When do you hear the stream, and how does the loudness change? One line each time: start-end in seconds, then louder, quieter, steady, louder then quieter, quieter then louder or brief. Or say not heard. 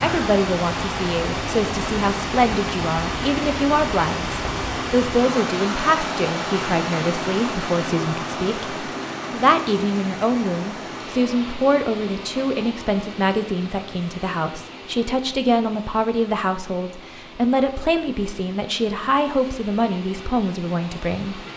0.0-21.5 quieter.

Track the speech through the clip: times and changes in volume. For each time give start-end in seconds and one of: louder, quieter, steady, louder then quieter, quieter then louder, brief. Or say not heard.
0.0-21.4 steady.